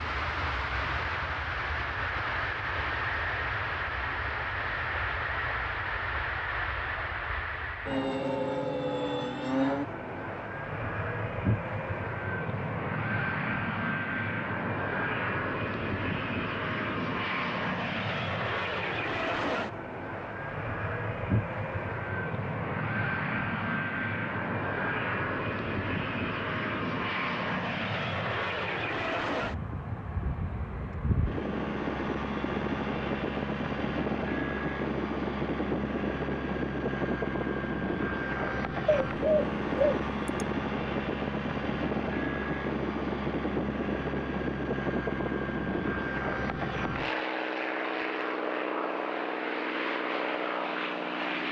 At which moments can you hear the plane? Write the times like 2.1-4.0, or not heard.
0.0-51.4.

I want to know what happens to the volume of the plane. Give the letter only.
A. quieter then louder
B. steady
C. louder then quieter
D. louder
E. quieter
B.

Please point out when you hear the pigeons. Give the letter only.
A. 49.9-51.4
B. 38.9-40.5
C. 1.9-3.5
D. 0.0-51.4
B.